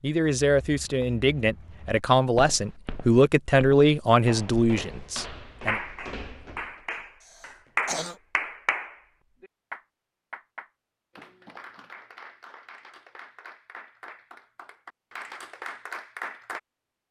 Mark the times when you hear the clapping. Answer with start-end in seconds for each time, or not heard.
5.7-16.6.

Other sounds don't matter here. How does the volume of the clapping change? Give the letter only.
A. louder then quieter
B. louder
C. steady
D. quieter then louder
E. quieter
D.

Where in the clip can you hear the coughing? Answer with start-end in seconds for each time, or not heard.
7.2-8.2.